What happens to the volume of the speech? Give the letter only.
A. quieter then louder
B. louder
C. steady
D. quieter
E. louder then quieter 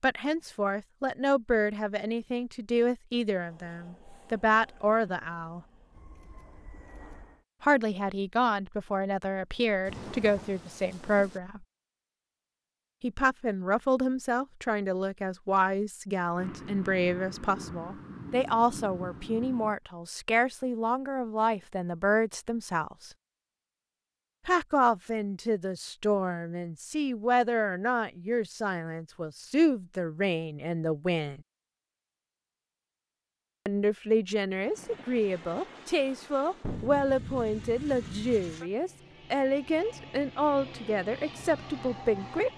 C.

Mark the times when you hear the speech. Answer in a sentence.
The speech can be heard from 0.0 to 5.6 s, from 7.6 to 11.7 s, from 13.0 to 23.1 s, from 24.4 to 31.4 s and from 33.6 to 42.5 s.